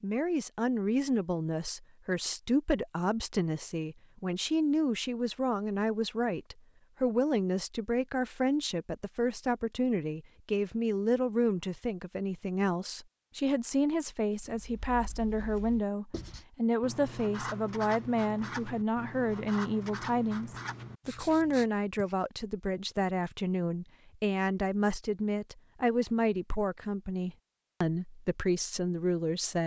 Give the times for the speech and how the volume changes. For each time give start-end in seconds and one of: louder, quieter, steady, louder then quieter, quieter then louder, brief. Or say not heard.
0.0-29.6 steady.